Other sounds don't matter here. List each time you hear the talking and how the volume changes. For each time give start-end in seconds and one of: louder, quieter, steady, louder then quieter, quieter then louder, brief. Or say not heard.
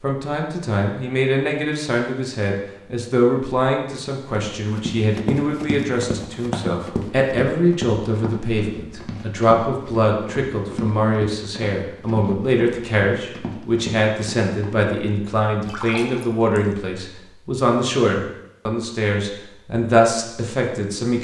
0.0-21.1 steady.